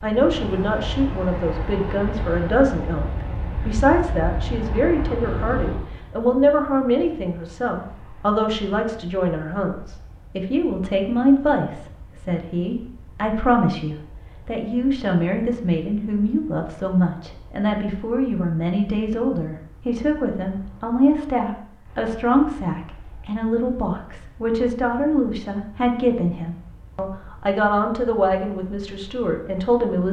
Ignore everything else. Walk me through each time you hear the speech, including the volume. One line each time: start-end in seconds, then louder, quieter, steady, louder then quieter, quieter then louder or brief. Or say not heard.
0.0-30.0 steady.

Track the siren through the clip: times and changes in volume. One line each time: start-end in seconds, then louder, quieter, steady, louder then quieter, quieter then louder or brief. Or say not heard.
not heard.